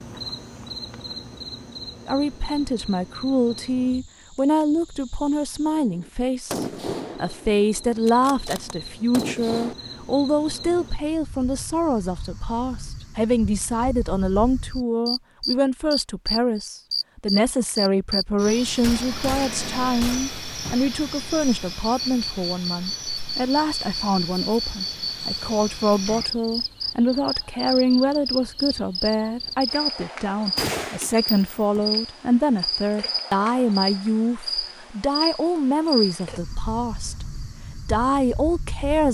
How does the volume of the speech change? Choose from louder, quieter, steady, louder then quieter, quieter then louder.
steady.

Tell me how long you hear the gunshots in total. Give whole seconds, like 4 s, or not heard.
8 s.